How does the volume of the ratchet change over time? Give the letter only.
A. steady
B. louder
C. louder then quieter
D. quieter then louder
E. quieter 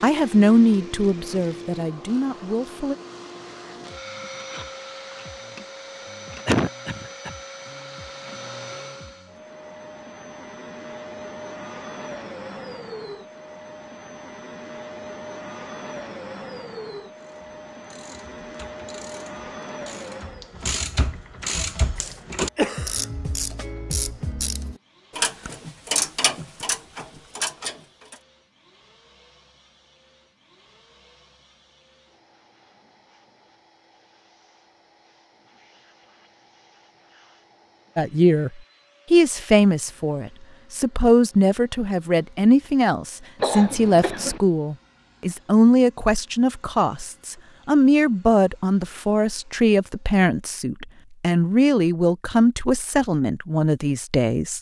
B.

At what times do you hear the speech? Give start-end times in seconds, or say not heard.
0.0-3.0, 38.0-54.5.